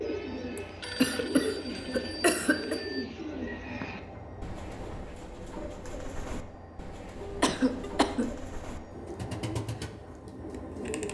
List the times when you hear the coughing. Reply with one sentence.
The coughing can be heard from 0.6 to 2.8 s and from 7.4 to 8.2 s.